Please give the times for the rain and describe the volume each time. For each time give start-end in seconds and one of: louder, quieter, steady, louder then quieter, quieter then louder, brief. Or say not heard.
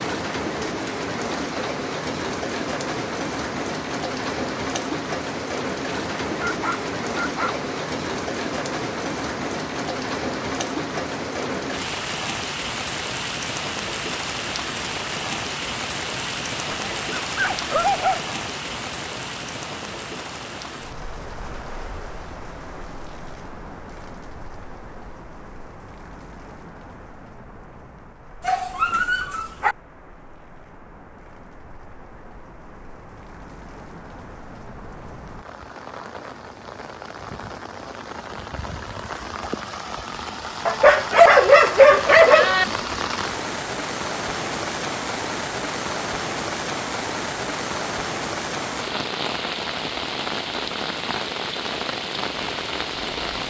0.0-53.4 quieter then louder.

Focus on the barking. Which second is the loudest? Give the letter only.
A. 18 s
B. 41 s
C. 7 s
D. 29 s
B.